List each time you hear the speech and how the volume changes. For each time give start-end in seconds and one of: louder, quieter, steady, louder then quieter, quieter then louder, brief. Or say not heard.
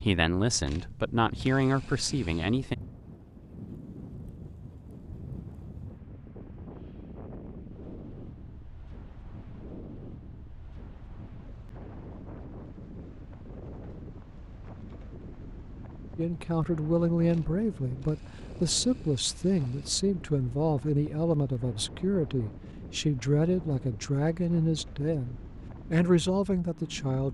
0.0-2.8 brief
16.1-27.3 steady.